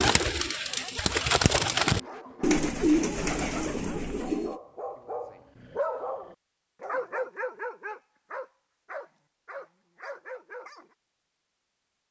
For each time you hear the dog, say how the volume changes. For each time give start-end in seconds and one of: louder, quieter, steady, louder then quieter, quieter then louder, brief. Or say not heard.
0.7-10.9 louder then quieter.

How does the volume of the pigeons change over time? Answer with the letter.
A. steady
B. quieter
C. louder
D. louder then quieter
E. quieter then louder
D.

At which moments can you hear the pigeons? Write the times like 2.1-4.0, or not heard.
0.0-4.6.